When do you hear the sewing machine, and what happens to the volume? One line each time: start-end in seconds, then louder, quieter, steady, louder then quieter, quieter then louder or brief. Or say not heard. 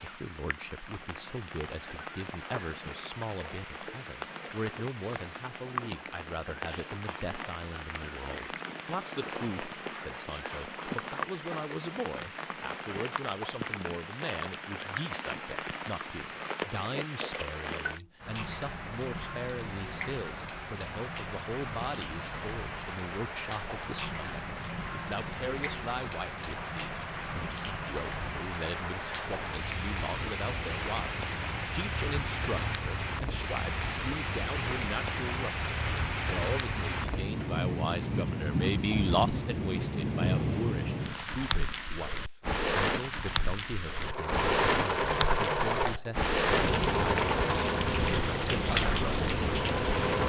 43.9-50.2 quieter.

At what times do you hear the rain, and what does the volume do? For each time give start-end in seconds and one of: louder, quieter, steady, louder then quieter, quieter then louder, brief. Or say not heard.
0.0-50.2 louder.